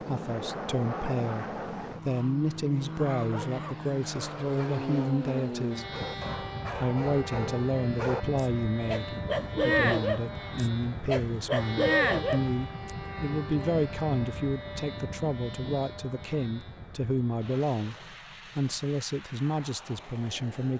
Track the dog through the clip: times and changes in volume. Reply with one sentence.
You can hear the dog from 3.1 to 12.9 s, getting louder.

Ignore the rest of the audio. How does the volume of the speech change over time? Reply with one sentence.
The loudness of the speech stays about the same.